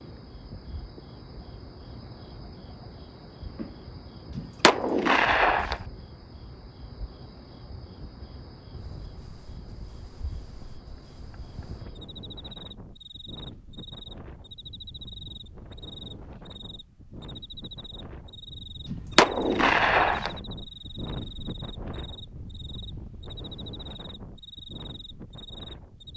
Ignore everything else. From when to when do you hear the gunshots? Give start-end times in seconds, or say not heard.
4.3-5.8, 18.9-20.3.